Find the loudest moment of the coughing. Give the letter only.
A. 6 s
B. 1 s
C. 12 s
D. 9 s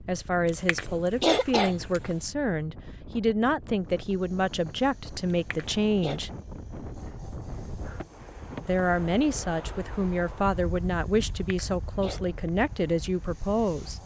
B.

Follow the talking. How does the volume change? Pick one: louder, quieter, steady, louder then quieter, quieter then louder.
steady.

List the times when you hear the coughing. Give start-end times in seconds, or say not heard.
0.5-2.1, 5.3-6.2, 11.4-12.2.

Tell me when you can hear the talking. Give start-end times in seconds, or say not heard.
0.1-6.3, 8.6-14.0.